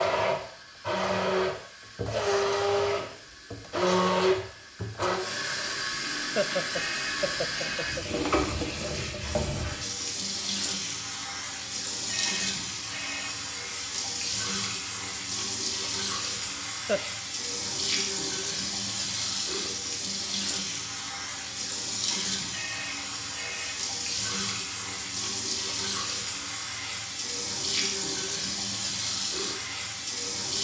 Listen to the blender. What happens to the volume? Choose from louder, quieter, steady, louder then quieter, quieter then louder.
quieter.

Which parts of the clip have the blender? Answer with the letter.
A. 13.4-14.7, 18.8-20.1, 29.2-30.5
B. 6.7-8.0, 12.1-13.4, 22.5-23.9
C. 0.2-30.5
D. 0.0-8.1
D.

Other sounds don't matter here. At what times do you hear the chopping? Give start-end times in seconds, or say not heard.
not heard.